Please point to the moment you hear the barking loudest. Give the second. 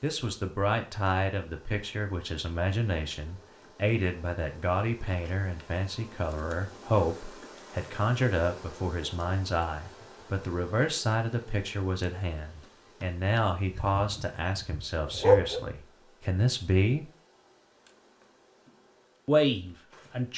15 s.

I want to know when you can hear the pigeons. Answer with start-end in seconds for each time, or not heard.
not heard.